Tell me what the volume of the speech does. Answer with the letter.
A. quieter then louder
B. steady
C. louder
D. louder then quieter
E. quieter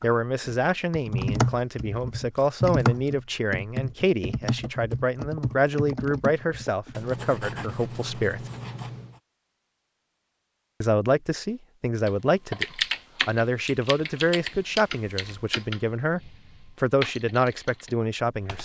B.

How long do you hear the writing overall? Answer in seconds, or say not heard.
2 s.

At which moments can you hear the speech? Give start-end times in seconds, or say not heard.
0.0-8.5, 10.8-18.6.